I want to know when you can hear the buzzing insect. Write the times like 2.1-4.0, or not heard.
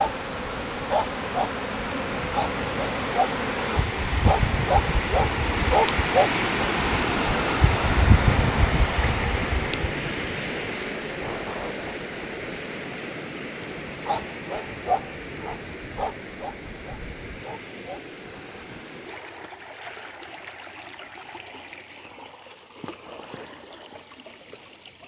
0.0-9.9.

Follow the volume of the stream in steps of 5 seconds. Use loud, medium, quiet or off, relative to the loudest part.
medium, loud, medium, quiet, quiet.